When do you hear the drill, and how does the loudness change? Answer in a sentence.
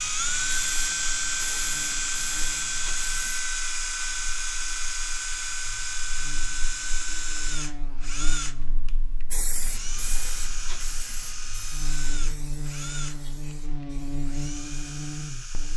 The drill can be heard from 0.0 to 15.7 s, getting quieter.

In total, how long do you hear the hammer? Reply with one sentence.
You can't hear the hammer here.